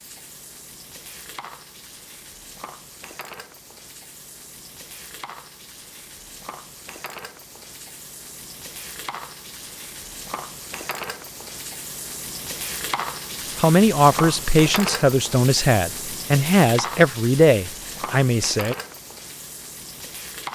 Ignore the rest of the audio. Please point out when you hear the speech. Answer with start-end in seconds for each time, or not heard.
13.6-18.8.